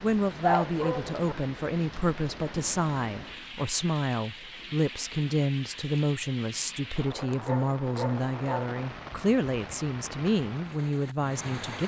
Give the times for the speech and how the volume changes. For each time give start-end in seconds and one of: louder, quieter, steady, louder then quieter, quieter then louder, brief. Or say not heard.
0.0-11.8 steady.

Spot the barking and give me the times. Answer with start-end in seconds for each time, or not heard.
0.4-1.4, 7.1-8.7.